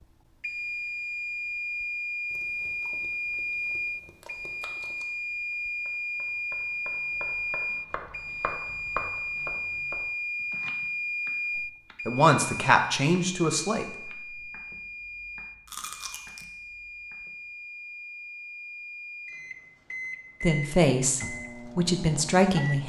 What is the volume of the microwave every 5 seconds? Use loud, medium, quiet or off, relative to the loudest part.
loud, loud, loud, medium, medium.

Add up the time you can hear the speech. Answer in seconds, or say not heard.
5 s.